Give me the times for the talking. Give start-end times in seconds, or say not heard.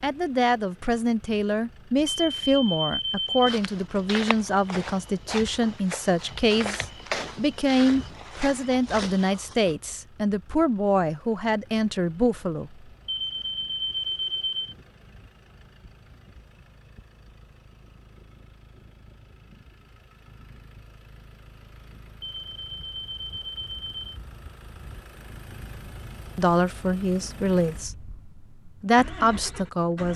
0.0-12.8, 26.4-30.1.